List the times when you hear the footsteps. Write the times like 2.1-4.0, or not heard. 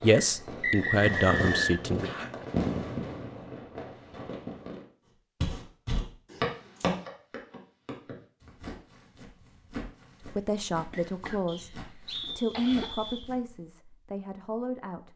5.4-13.6.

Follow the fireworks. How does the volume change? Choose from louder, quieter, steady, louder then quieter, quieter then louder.
louder then quieter.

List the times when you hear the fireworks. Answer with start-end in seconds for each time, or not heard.
0.0-4.8.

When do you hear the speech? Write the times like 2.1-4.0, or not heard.
0.0-2.1, 10.2-15.1.